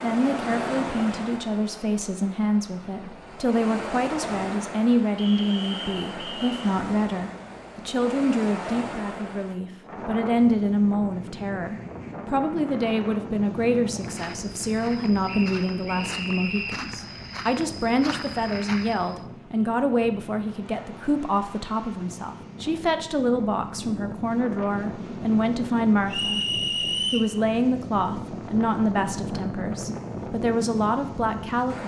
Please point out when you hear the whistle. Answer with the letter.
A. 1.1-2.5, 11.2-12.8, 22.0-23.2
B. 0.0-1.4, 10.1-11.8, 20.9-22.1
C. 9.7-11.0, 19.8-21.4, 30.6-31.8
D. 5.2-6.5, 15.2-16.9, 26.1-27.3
D.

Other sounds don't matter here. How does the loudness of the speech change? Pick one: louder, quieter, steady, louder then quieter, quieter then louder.
steady.